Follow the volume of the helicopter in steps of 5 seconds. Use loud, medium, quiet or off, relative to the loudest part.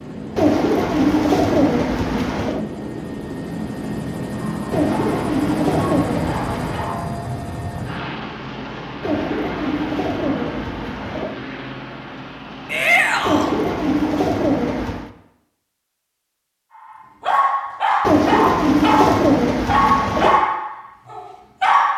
loud, loud, medium, off, off.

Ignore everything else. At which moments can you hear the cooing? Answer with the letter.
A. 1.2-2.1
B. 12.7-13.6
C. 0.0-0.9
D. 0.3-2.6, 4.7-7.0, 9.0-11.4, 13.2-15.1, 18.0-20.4
D.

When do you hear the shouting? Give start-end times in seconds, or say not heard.
12.7-13.6.